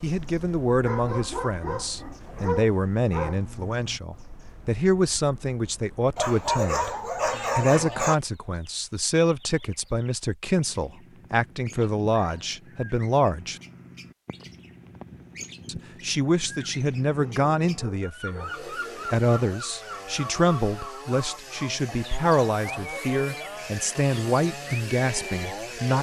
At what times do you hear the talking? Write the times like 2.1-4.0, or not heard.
0.0-7.0, 7.5-13.6, 15.7-18.5, 19.1-25.9.